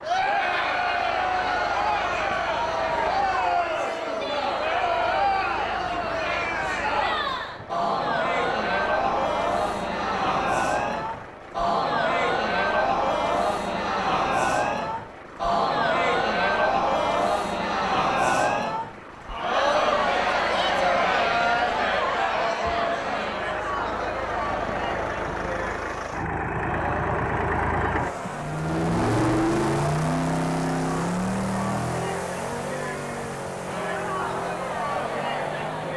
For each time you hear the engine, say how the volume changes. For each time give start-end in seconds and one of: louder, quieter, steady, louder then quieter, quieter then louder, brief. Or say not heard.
0.0-35.9 louder.